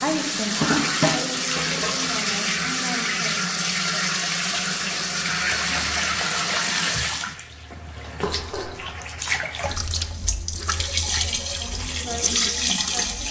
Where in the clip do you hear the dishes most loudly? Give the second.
1 s.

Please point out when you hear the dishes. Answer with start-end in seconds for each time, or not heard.
0.6-2.1, 8.2-8.8.